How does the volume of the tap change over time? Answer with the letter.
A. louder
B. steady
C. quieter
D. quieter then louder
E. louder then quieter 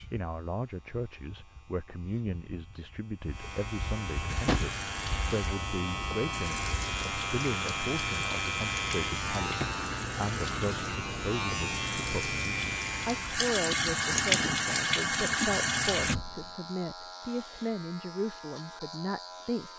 A.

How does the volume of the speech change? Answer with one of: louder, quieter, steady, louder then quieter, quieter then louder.
steady.